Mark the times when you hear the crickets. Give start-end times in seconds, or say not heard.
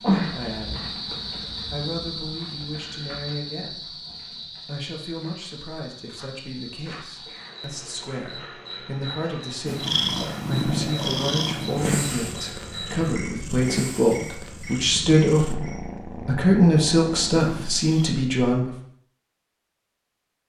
0.0-15.8.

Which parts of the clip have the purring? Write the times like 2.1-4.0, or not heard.
9.7-18.1.